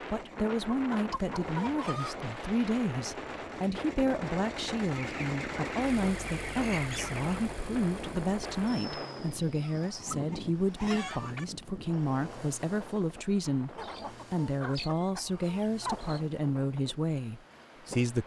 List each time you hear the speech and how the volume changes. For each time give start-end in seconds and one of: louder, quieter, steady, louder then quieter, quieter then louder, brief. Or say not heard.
0.1-18.2 steady.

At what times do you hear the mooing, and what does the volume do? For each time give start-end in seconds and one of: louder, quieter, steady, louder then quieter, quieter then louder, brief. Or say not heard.
not heard.